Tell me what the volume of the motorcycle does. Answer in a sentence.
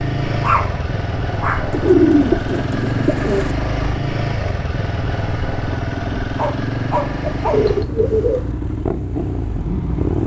The volume of the motorcycle stays about the same.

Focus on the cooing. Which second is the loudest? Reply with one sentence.
The loudest moment of the cooing is at 2 seconds.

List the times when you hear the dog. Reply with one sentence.
The dog can be heard from 0.4 to 1.8 s and from 6.3 to 7.7 s.